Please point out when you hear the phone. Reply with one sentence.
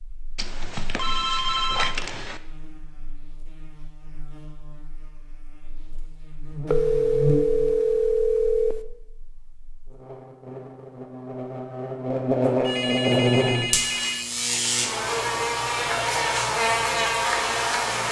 You can hear the phone from 0.3 to 2.4 s, from 6.7 to 8.8 s and from 12.6 to 14.3 s.